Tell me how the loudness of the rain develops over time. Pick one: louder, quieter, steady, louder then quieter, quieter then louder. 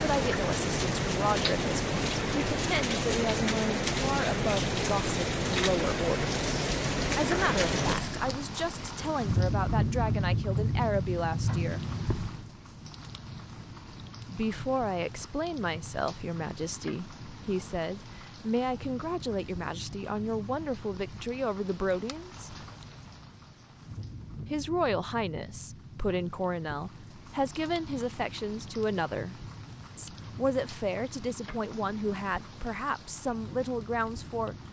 quieter.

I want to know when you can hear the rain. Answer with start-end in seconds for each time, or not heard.
0.0-34.6.